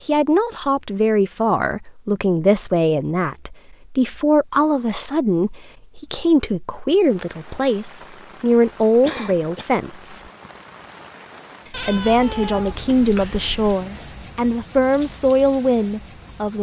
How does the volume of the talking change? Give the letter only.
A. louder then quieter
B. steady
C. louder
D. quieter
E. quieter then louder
B.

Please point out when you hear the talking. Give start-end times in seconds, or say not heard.
0.1-10.2, 11.8-16.5.